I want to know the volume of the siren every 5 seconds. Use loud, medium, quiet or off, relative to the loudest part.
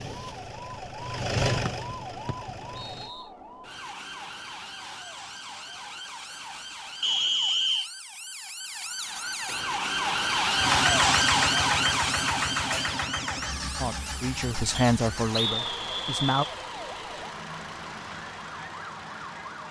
quiet, medium, loud, quiet.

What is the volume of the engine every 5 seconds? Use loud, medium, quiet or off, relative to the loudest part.
loud, off, loud, medium.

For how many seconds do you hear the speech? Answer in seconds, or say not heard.
3 s.